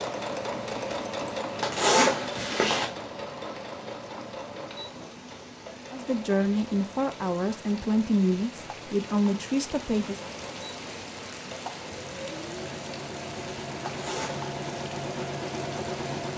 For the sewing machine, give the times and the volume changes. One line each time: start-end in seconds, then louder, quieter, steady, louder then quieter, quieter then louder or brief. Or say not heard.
0.0-16.3 quieter then louder.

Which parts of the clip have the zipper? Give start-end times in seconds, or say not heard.
1.6-2.9, 13.8-14.5.